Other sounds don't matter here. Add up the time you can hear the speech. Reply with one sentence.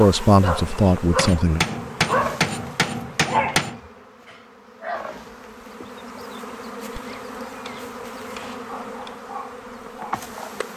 The speech can be heard for 2 seconds in total.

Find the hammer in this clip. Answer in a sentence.
The hammer can be heard from 1.1 to 3.8 s and from 6.9 to 9.2 s.